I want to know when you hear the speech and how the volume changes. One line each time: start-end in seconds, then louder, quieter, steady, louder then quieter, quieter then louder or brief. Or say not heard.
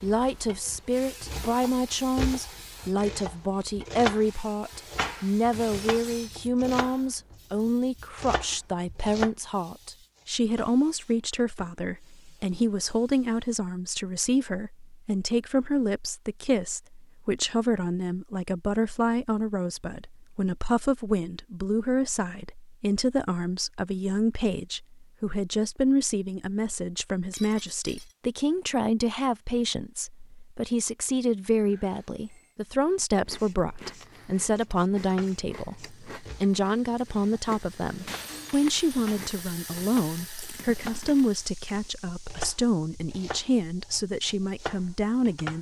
0.0-45.5 steady.